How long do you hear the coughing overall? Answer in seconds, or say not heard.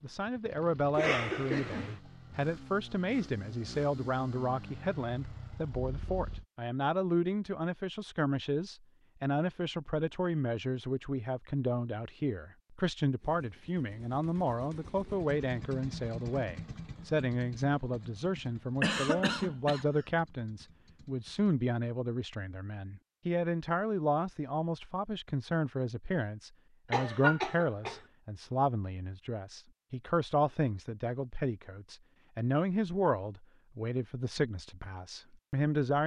3 s.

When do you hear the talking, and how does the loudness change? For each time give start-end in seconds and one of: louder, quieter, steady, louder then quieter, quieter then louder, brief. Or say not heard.
0.0-36.0 steady.